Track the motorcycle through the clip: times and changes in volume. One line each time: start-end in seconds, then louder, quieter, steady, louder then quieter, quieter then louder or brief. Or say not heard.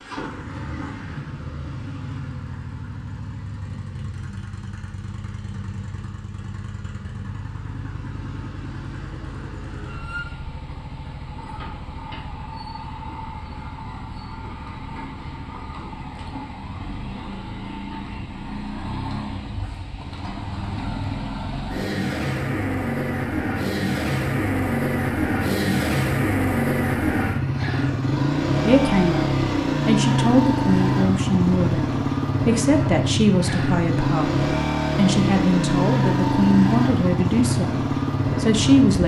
0.0-39.0 louder.